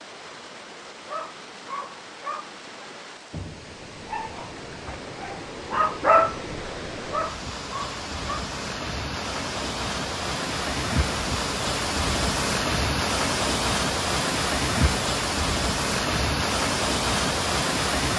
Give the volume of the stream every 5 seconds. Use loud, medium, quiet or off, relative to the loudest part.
quiet, medium, loud, loud.